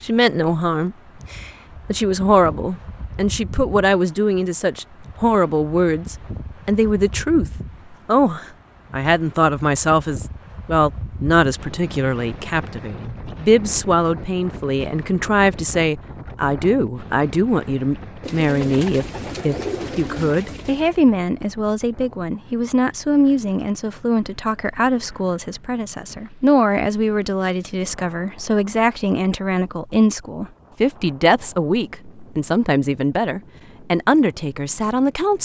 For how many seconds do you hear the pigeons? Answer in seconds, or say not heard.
3 s.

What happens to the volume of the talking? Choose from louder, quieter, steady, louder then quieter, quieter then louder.
steady.